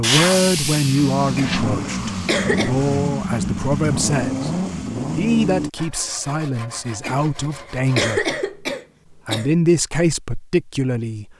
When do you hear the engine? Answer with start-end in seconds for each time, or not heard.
0.1-5.7.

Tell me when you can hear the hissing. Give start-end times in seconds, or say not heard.
0.0-2.4.